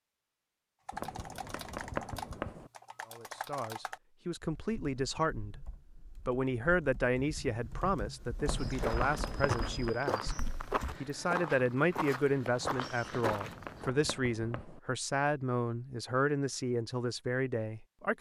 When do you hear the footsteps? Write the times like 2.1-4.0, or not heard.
8.4-13.9.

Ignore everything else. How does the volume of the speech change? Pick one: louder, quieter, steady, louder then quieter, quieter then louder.
steady.